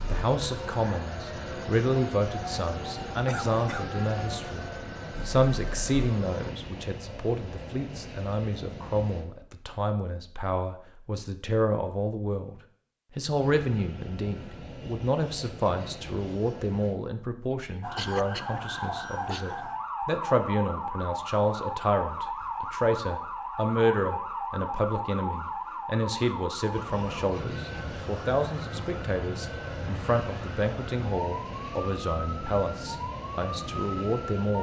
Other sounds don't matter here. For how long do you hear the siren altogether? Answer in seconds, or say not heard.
23 s.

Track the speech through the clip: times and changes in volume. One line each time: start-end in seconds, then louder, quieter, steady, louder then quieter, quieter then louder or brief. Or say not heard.
0.1-34.5 steady.